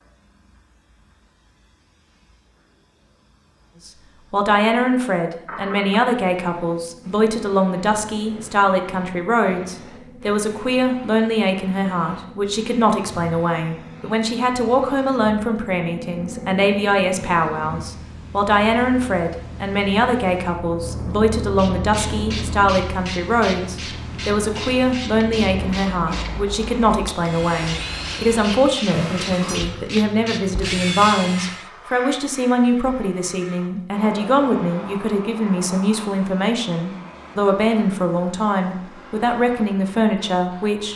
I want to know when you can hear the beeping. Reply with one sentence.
The beeping can be heard from 28.9 to 29.6 s.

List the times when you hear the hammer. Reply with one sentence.
The hammer can't be heard in this clip.